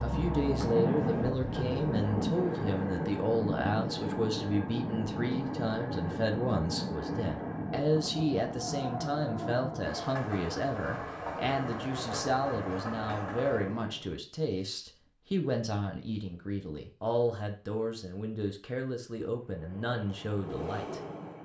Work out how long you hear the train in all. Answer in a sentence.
You can hear the train for 16 seconds altogether.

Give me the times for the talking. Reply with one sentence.
The talking can be heard from 0.0 to 21.4 s.